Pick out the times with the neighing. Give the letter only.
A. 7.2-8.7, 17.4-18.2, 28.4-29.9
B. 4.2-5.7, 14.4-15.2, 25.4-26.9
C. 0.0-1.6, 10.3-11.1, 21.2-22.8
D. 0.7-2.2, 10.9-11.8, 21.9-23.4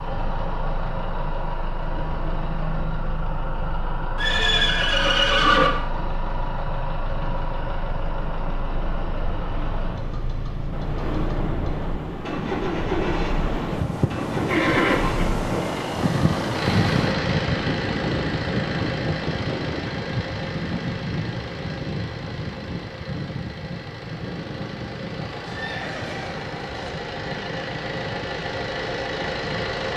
B.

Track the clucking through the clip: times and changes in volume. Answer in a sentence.
You can't hear the clucking here.